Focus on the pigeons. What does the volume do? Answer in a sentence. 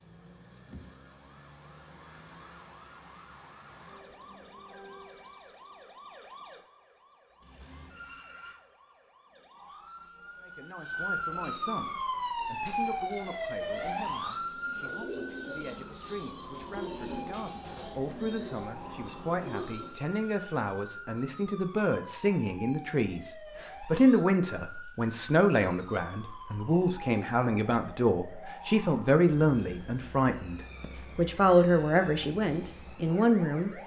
The loudness of the pigeons goes up.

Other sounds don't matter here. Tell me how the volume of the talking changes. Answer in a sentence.
The volume of the talking goes up.